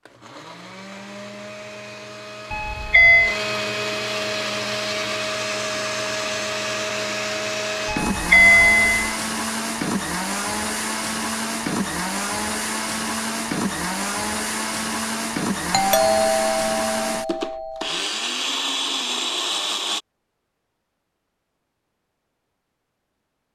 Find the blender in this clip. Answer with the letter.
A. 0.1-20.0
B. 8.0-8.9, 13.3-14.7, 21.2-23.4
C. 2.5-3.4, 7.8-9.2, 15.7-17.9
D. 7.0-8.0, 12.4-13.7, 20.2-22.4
A.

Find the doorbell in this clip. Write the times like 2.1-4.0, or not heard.
2.5-3.4, 7.8-9.2, 15.7-17.9.